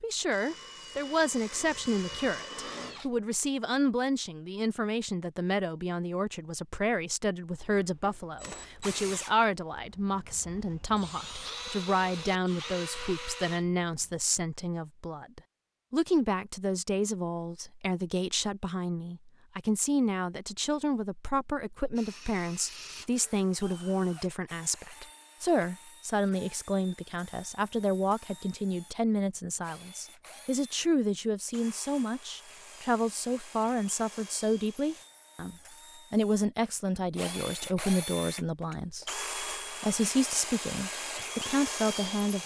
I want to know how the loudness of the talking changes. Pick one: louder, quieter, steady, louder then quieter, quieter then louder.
steady.